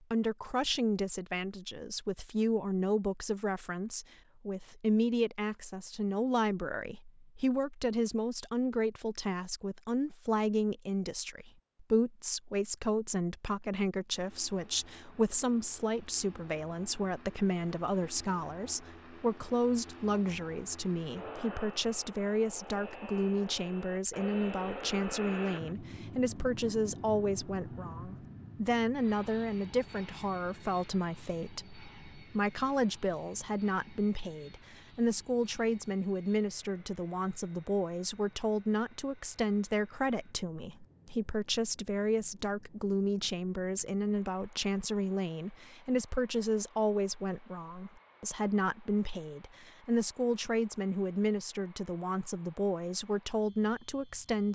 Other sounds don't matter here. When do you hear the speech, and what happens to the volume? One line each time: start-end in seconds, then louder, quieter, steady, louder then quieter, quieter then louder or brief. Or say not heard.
0.1-54.5 steady.